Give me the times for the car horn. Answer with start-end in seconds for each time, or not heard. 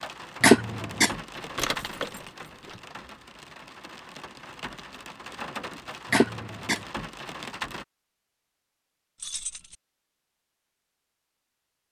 not heard.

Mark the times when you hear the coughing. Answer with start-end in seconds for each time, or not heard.
0.4-1.1, 6.1-6.8.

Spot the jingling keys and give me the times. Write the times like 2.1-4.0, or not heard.
1.4-2.8, 9.2-9.8.